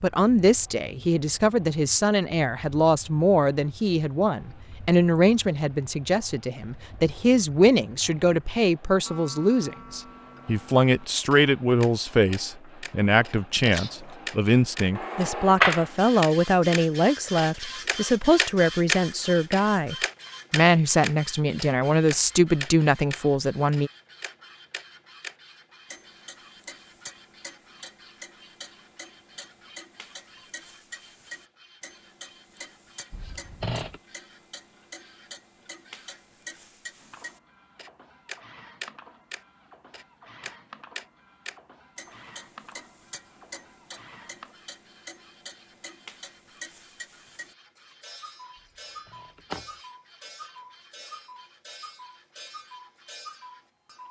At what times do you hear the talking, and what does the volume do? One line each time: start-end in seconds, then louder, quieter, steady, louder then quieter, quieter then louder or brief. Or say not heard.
0.0-23.9 steady.